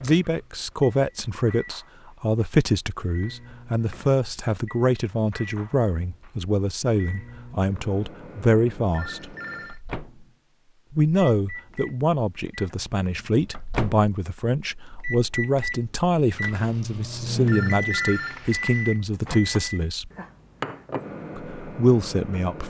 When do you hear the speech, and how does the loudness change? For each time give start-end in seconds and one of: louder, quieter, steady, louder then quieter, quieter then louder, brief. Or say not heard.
0.0-9.3 steady
10.9-20.1 steady
21.4-22.6 brief.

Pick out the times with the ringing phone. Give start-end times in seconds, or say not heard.
8.9-9.8, 17.4-18.9.